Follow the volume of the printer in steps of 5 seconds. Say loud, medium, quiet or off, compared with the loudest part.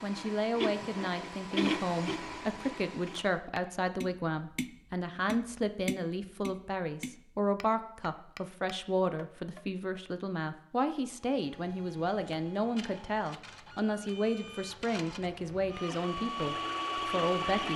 loud, off, quiet, loud.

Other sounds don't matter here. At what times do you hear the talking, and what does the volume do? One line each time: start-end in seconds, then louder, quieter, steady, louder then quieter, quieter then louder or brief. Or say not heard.
0.0-17.7 steady.